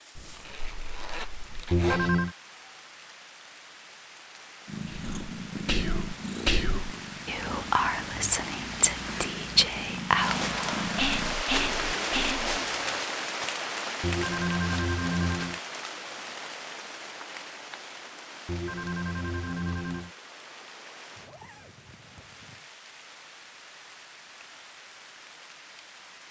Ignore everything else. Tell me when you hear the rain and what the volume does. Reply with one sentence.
The rain can be heard from 0.0 to 26.2 s, getting louder then quieter.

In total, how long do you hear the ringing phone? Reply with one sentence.
You can hear the ringing phone for 4 seconds altogether.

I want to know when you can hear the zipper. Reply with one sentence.
The zipper can be heard from 0.1 to 2.1 s, from 11.6 to 12.7 s and from 21.1 to 22.6 s.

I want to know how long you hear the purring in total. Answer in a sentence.
You can hear the purring for 7 seconds altogether.